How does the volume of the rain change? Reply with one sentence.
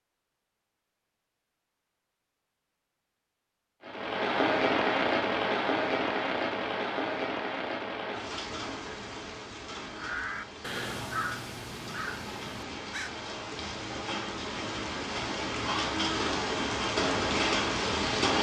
The loudness of the rain goes down, then up.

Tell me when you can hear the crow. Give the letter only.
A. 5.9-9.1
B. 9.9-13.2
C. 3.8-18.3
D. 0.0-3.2
B.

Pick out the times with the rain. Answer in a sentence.
You can hear the rain from 3.8 to 18.3 s.